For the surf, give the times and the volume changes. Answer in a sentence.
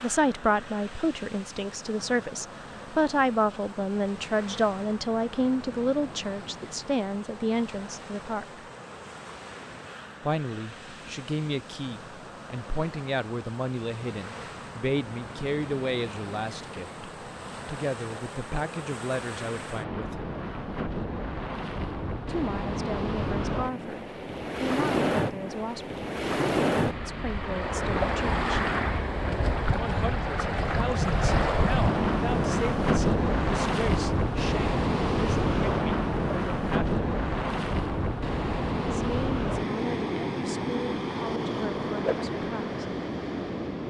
The surf can be heard from 0.0 to 43.8 s, getting louder.